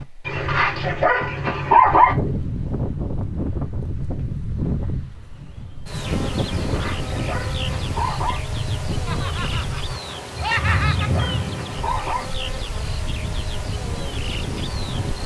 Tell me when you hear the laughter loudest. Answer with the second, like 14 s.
11 s.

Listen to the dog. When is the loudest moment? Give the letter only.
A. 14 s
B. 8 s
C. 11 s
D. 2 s
D.